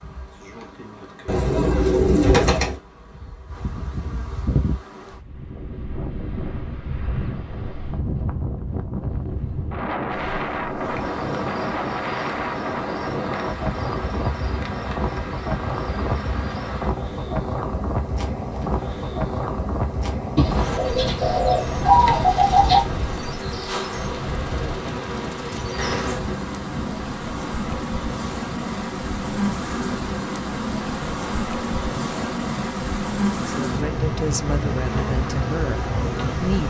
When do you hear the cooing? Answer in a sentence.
The cooing can be heard from 1.2 to 2.8 s and from 20.4 to 22.9 s.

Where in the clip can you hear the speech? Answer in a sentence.
The speech can be heard from 33.4 to 36.6 s.